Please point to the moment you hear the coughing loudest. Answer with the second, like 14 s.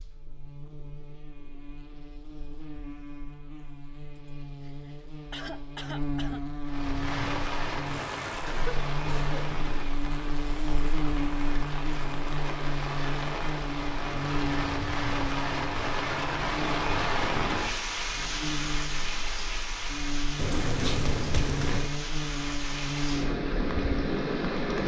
21 s.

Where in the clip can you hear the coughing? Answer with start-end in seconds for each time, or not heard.
4.2-6.4, 8.4-9.4, 20.4-21.9.